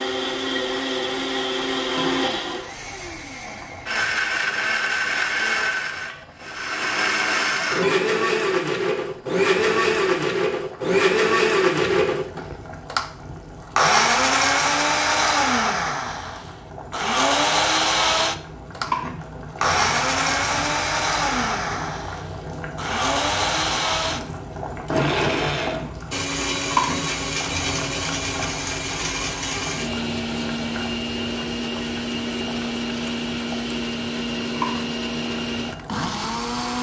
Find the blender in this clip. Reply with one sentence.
You can hear the blender from 0.0 to 36.7 s.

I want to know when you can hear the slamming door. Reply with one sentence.
The slamming door can't be heard in this clip.